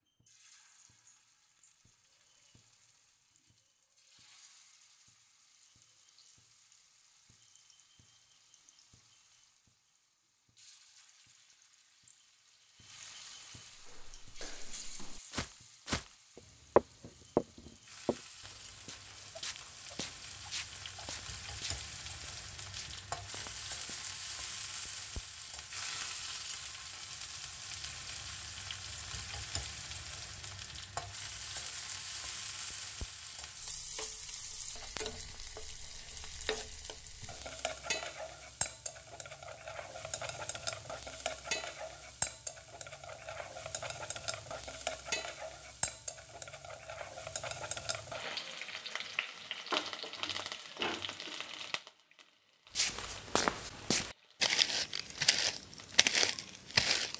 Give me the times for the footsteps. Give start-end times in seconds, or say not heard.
13.8-24.1, 52.8-57.1.